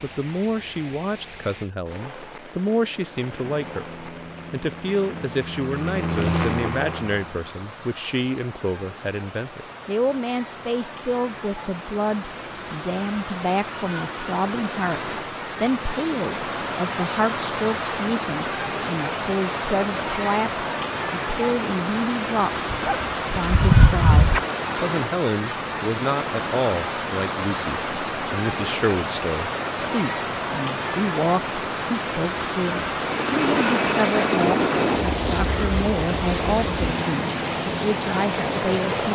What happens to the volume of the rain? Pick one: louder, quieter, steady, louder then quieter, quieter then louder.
louder.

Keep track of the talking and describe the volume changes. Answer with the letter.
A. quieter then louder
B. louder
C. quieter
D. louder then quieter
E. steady
E.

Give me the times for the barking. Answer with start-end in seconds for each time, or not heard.
22.7-24.4.